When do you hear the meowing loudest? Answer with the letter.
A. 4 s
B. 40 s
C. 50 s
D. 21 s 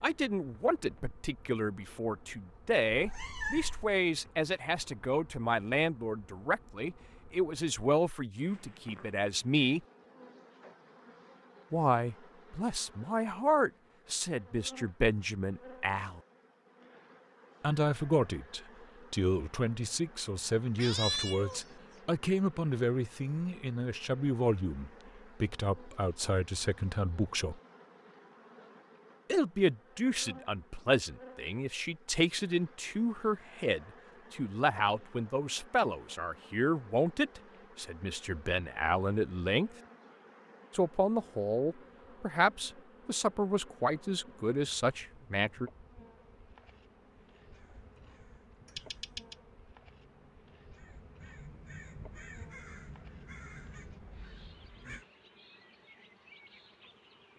D.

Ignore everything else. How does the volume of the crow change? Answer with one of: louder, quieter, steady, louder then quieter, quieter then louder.
louder.